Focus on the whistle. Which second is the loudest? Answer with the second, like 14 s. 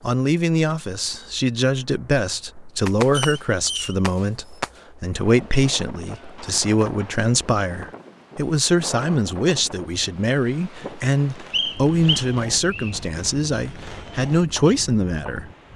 12 s.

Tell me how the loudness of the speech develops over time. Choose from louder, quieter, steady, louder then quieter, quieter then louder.
steady.